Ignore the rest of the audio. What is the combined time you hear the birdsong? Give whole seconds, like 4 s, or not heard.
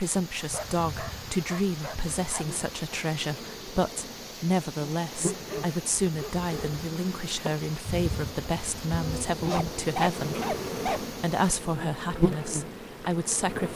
not heard.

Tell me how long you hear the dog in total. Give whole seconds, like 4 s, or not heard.
5 s.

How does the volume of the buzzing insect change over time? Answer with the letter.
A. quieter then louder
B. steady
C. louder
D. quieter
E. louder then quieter
C.